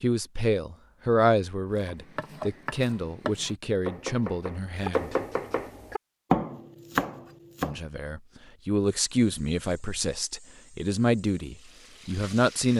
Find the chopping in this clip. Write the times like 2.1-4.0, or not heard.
1.8-7.8.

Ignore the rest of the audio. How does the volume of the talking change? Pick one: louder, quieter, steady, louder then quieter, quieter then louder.
quieter then louder.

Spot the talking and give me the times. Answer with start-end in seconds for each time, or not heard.
0.0-5.2, 7.6-12.7.